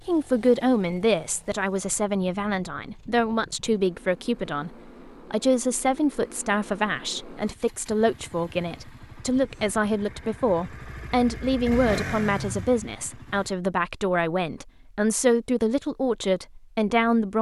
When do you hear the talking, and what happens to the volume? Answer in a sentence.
The talking can be heard from 0.1 to 17.3 s, at a steady volume.